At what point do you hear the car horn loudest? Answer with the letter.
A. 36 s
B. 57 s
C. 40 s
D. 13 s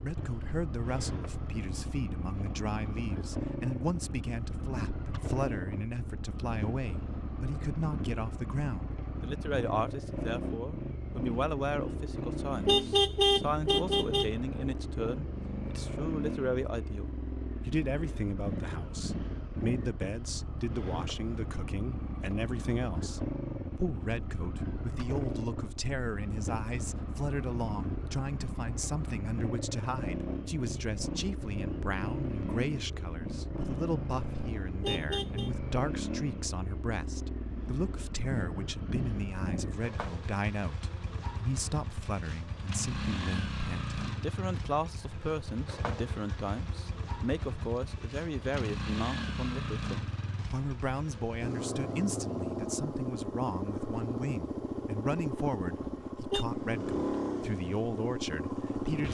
D.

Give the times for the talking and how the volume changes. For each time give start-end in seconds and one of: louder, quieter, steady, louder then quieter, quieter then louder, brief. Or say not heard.
0.0-59.0 steady.